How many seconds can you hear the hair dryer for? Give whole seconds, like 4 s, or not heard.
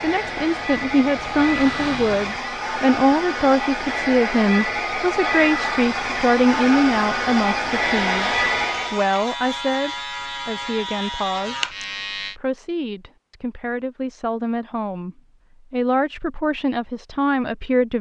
9 s.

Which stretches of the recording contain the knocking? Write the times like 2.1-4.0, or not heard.
not heard.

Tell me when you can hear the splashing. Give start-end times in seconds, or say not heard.
not heard.